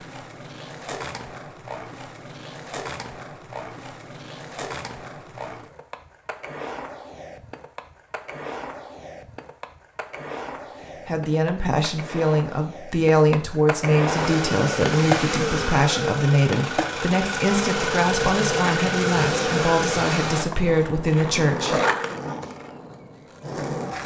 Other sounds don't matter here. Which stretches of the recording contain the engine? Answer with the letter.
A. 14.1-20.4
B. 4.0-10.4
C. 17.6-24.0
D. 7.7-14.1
A.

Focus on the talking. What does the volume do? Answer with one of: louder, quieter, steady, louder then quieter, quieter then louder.
steady.